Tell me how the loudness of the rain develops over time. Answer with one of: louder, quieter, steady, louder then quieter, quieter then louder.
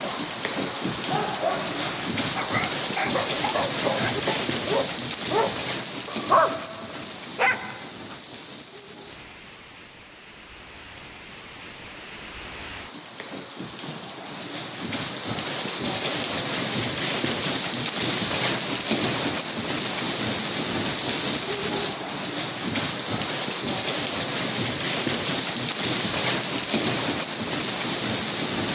quieter then louder.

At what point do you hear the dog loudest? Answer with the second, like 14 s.
6 s.